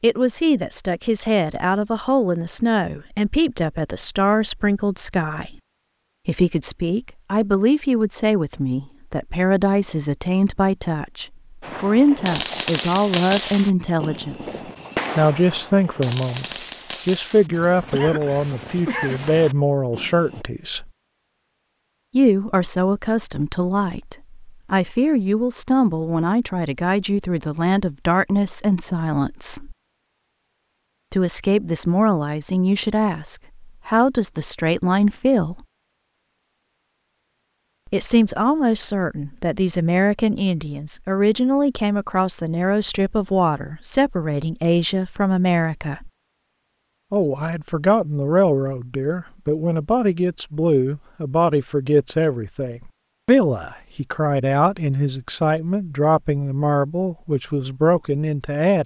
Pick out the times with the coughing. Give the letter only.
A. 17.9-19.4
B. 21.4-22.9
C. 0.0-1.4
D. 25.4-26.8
A.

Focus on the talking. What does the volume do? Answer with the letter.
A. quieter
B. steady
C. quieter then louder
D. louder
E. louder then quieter
B.